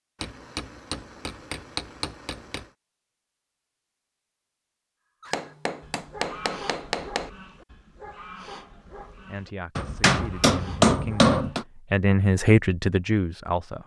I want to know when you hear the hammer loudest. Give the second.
11 s.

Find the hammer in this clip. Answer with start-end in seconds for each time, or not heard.
0.2-2.6, 5.3-7.3, 9.8-11.7.